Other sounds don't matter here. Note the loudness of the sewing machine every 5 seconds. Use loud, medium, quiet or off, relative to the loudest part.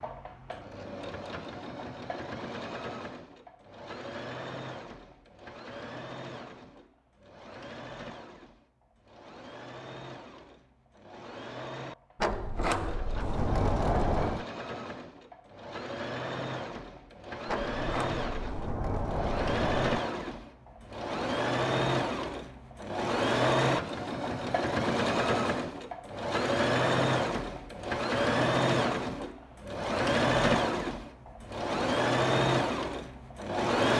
quiet, quiet, quiet, medium, loud, loud, loud.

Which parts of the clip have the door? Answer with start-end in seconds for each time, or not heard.
12.2-14.4, 17.4-20.1.